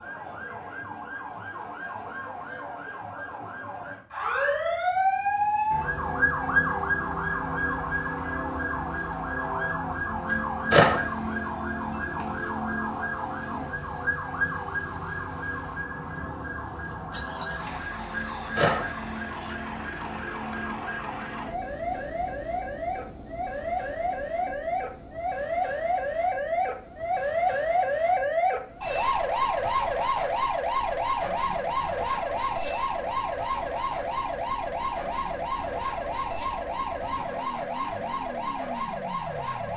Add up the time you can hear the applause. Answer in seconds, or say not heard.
not heard.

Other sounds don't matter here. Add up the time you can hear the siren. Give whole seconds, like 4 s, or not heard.
40 s.